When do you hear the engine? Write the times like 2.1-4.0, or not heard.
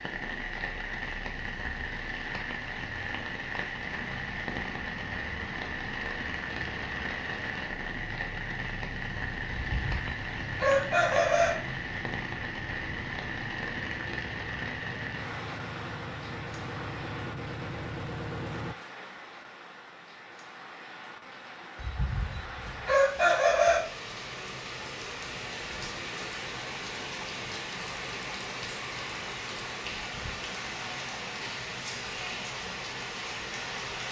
3.8-18.8.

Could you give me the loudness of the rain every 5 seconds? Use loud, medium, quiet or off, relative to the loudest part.
loud, loud, loud, medium, medium, loud, loud.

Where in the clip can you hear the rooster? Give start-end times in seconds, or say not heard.
9.6-11.5, 21.8-23.8.